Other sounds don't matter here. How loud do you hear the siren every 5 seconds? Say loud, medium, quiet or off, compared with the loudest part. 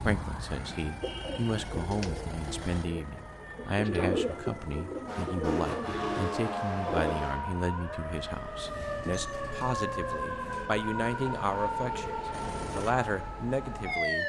quiet, loud, loud.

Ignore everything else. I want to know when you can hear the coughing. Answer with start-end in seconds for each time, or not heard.
not heard.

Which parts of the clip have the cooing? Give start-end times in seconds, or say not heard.
1.0-7.2.